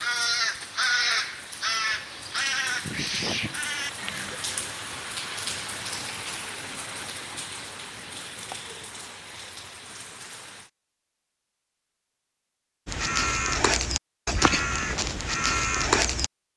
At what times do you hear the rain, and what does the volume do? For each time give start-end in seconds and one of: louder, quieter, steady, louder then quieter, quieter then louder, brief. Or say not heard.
0.0-10.7 louder then quieter.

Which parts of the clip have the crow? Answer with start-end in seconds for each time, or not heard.
0.0-4.4, 12.8-16.3.